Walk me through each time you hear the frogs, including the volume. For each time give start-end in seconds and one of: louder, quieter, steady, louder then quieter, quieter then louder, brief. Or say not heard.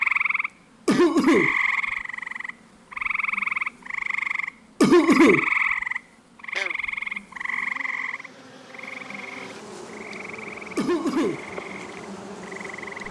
0.0-13.0 quieter.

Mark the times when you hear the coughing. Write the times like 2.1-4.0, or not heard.
0.8-1.6, 4.8-5.5, 10.8-11.4.